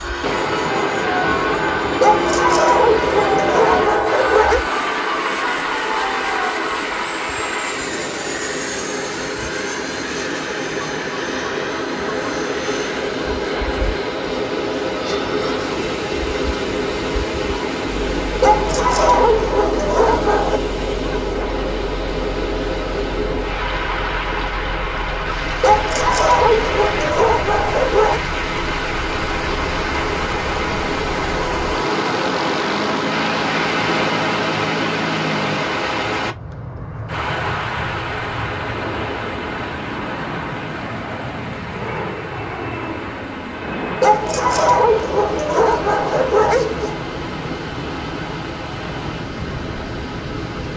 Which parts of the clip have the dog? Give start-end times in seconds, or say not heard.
2.0-4.7, 18.4-20.6, 25.6-28.2, 44.0-47.0.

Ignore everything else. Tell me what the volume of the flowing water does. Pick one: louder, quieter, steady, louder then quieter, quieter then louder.
quieter.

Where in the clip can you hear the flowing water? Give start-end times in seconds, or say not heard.
0.1-50.7.